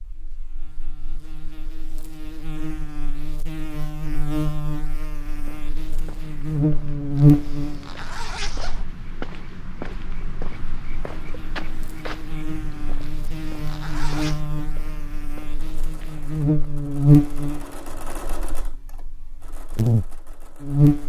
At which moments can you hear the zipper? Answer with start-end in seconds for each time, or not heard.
7.2-8.8, 13.0-14.4.